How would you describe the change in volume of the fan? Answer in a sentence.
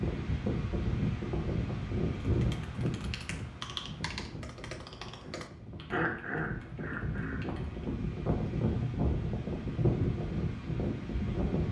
The loudness of the fan goes down, then up.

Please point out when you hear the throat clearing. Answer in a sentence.
The throat clearing can be heard from 5.9 to 7.5 s.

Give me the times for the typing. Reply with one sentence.
You can hear the typing from 2.2 to 7.8 s.